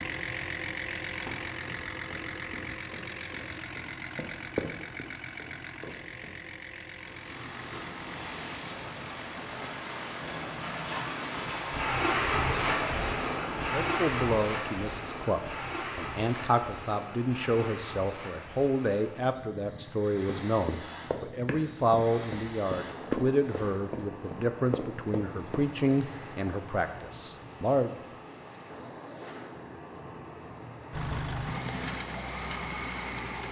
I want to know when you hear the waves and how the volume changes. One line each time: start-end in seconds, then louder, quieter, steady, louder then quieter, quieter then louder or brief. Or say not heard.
7.0-33.4 quieter.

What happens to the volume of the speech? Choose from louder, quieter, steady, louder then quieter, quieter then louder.
steady.